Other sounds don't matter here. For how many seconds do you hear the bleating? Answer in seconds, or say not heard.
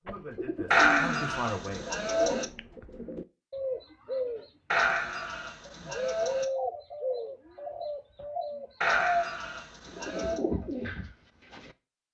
5 s.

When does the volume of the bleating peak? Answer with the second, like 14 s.
1 s.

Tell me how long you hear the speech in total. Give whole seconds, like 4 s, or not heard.
2 s.